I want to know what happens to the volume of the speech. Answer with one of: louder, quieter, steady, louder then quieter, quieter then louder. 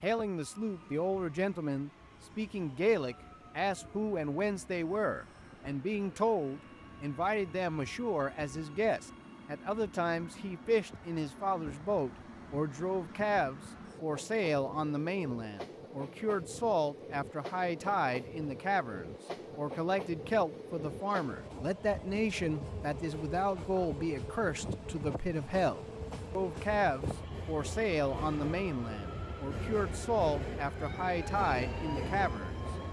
steady.